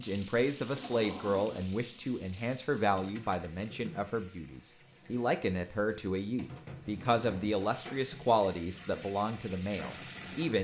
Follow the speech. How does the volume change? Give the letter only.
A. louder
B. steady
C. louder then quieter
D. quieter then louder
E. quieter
B.